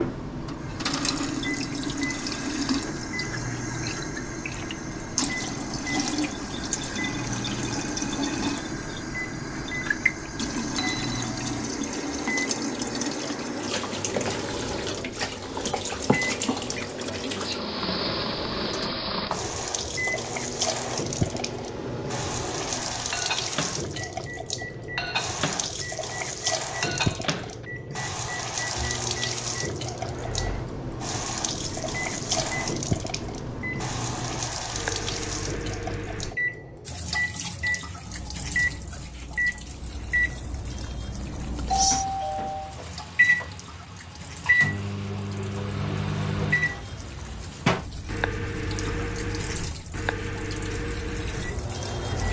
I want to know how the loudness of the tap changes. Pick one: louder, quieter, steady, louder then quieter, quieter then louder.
quieter.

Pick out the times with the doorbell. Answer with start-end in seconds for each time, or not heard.
10.8-11.6, 41.7-42.8.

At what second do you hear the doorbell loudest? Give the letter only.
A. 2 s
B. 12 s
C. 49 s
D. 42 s
D.